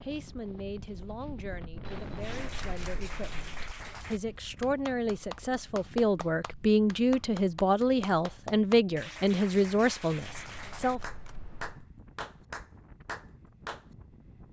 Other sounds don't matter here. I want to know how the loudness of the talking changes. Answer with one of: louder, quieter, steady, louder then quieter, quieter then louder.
louder.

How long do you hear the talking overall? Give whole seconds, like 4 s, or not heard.
11 s.